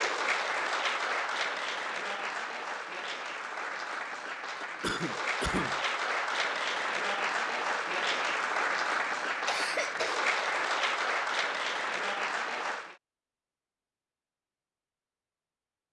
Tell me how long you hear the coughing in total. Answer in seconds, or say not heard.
2 s.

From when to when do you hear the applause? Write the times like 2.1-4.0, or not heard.
0.0-12.9.